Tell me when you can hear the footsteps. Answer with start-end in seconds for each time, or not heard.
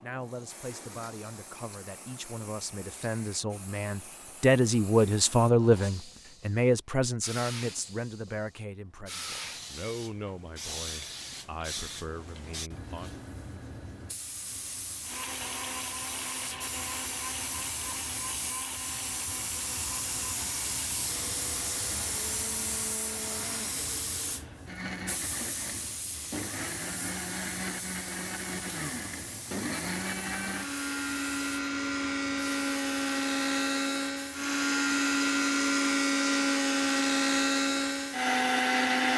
not heard.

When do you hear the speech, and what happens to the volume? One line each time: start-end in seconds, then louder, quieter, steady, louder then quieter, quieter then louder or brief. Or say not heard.
0.0-13.2 louder then quieter.